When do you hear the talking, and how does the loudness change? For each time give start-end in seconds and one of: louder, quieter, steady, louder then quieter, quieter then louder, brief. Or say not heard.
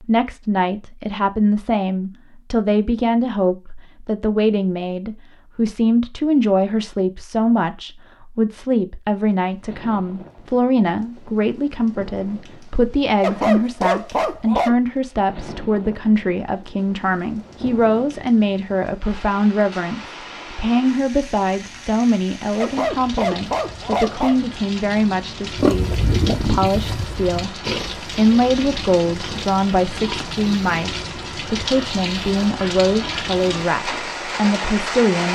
0.0-35.3 steady.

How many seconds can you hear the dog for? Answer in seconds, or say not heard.
3 s.